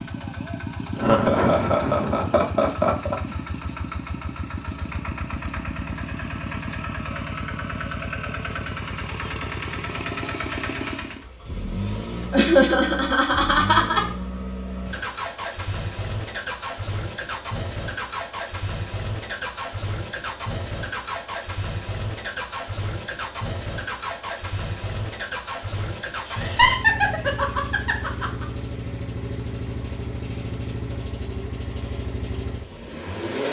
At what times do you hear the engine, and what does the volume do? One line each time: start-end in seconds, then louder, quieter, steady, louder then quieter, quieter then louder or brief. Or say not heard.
0.0-33.4 steady.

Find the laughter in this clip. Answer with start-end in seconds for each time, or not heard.
0.9-3.1, 12.3-14.1, 26.2-28.4.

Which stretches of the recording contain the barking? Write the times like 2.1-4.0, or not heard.
not heard.